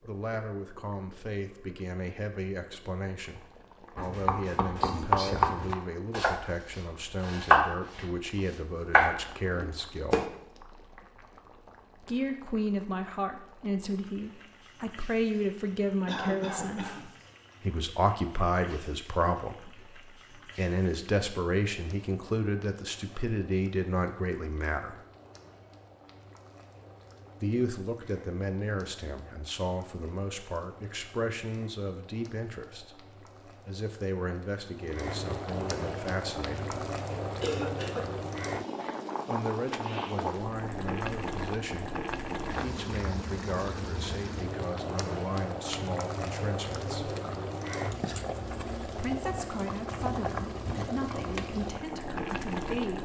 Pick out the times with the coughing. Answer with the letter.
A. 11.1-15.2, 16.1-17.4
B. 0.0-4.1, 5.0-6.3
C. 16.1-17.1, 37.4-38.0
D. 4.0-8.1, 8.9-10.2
C.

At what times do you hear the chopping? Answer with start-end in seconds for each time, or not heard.
4.0-8.1, 8.9-10.2.